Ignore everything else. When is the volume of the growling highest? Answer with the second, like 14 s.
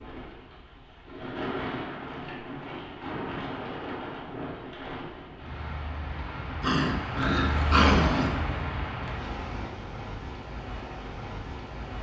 8 s.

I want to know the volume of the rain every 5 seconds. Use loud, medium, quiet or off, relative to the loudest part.
loud, loud, medium.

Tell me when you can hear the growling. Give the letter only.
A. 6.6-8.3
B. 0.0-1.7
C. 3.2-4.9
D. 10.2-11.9
A.